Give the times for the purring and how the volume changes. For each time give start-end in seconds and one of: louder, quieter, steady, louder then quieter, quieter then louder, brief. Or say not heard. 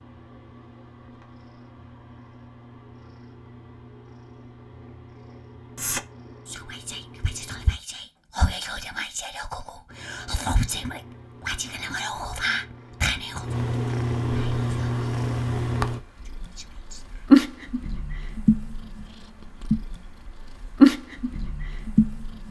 0.0-7.8 steady
9.8-22.4 louder.